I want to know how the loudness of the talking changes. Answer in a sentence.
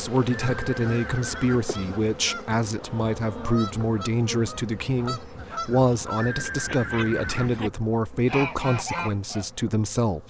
The loudness of the talking stays about the same.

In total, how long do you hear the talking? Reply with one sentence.
The talking can be heard for 10 seconds in total.